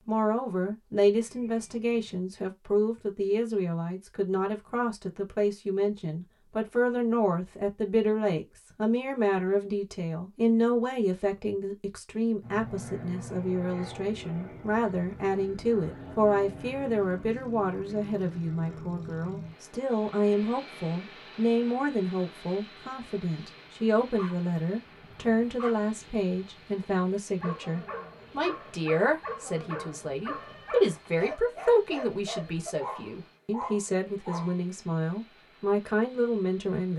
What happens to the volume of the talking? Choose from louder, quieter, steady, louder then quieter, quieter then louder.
steady.